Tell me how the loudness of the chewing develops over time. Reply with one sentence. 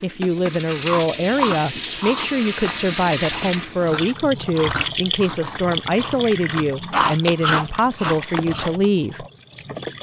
The volume of the chewing goes down, then up.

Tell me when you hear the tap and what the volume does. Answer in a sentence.
The tap can be heard from 0.0 to 9.9 s, getting quieter.